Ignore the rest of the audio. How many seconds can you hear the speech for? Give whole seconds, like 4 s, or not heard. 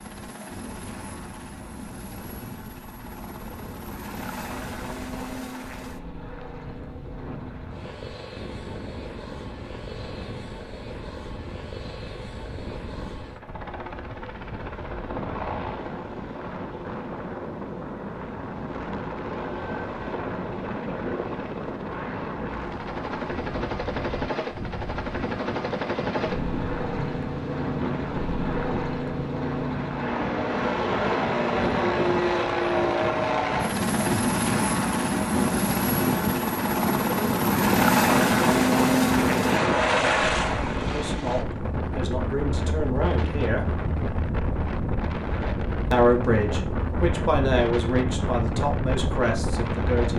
7 s.